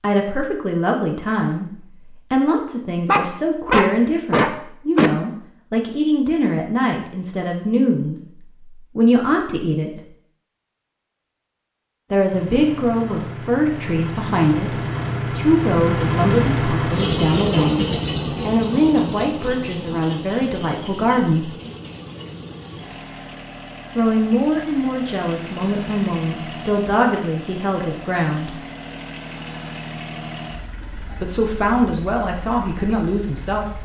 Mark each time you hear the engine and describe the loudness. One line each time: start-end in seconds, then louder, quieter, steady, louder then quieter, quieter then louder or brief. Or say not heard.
12.3-33.7 quieter.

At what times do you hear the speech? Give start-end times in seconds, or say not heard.
0.0-10.0, 12.1-17.9, 18.4-21.5, 23.9-28.6, 31.0-33.7.